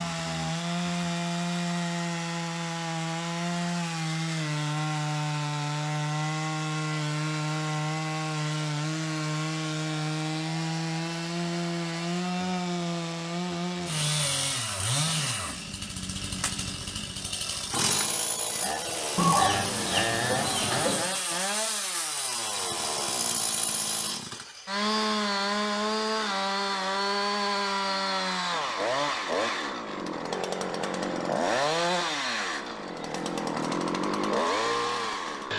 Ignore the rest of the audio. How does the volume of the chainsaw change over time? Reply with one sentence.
The volume of the chainsaw stays about the same.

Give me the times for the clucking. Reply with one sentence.
The clucking can be heard from 19.1 to 21.0 s.